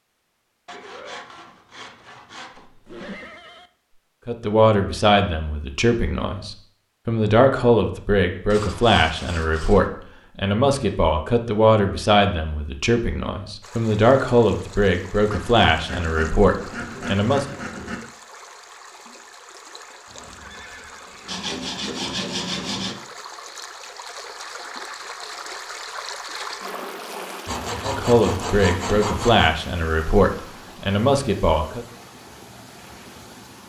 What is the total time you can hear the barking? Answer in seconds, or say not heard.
not heard.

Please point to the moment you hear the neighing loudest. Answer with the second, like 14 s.
3 s.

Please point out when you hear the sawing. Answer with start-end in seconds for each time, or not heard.
0.7-3.2, 8.5-9.9, 15.3-18.0, 21.2-23.0, 27.4-29.5.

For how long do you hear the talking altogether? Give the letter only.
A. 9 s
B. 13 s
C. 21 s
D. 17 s
D.